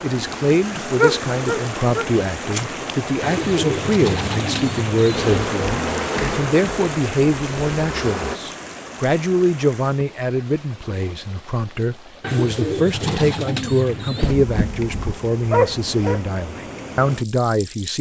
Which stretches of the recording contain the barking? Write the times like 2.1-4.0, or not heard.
0.9-2.7, 14.2-16.2.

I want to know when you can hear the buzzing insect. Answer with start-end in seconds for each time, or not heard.
5.1-8.4.